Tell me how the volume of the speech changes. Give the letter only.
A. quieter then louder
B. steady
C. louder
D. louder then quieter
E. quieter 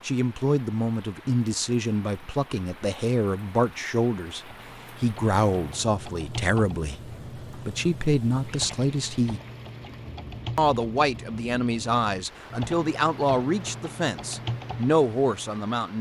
B.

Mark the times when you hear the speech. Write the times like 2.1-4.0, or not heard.
0.0-9.4, 10.6-15.9.